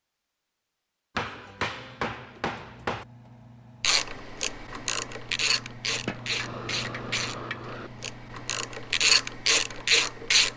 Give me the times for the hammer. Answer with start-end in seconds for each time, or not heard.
1.1-3.0, 6.0-7.9.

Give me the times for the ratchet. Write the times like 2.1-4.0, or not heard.
3.8-10.5.